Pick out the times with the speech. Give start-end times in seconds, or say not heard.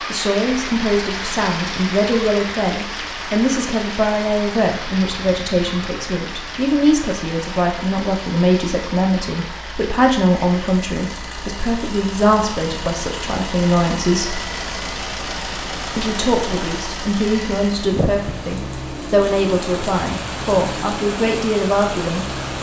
0.1-14.4, 15.9-22.2.